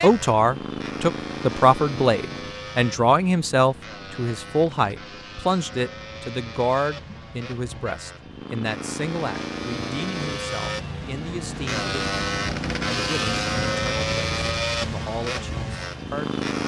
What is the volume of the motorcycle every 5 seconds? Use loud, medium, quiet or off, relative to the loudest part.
medium, medium, loud, loud.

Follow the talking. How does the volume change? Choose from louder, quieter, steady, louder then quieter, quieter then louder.
quieter.